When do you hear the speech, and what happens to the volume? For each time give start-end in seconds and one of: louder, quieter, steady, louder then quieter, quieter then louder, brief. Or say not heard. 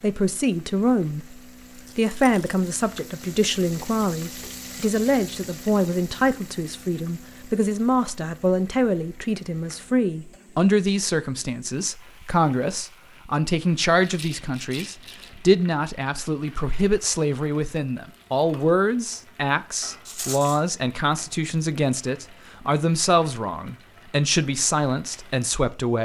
0.0-1.4 brief
1.9-26.0 steady.